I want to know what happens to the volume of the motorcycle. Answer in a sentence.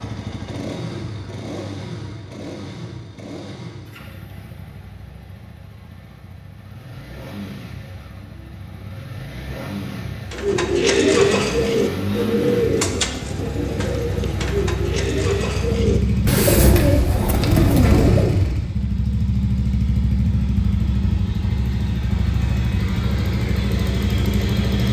The loudness of the motorcycle goes up.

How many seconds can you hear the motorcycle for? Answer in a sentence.
You can hear the motorcycle for 25 seconds altogether.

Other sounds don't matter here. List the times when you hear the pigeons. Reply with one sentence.
The pigeons can be heard from 10.3 to 18.5 s.